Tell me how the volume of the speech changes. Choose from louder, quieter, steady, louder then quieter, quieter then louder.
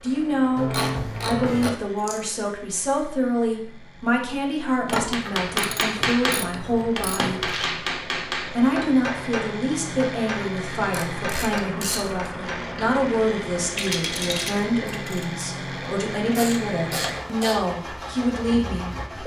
steady.